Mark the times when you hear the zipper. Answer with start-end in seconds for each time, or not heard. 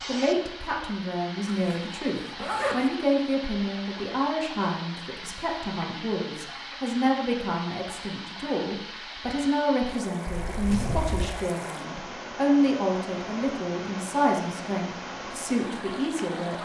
1.4-2.9, 10.2-11.4.